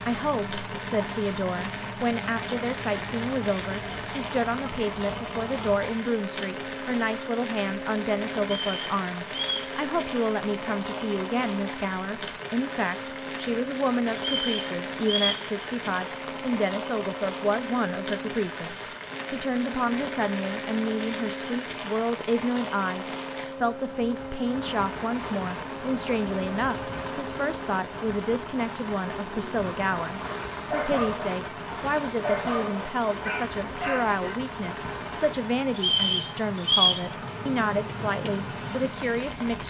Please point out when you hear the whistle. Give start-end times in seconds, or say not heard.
8.4-9.8, 14.2-15.4, 35.8-37.0.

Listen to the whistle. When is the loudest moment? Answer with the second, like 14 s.
37 s.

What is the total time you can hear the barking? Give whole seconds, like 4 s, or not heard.
5 s.